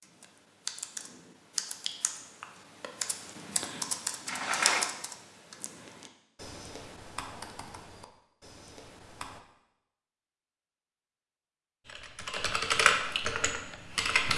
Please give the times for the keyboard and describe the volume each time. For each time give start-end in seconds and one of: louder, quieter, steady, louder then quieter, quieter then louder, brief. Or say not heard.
0.0-9.4 quieter
11.8-14.3 brief.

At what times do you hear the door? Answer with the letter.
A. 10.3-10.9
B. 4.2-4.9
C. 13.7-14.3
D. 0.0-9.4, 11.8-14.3
B.